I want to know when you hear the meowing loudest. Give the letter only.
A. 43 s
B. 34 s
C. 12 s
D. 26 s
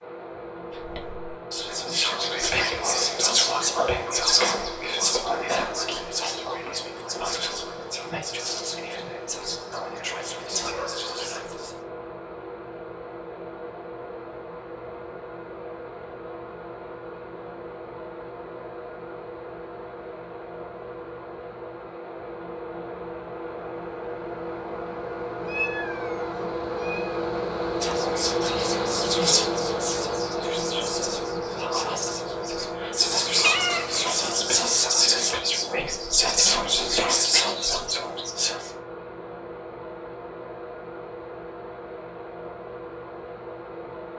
B.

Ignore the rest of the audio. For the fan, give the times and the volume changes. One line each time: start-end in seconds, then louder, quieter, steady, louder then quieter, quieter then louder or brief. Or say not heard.
0.0-44.1 louder then quieter.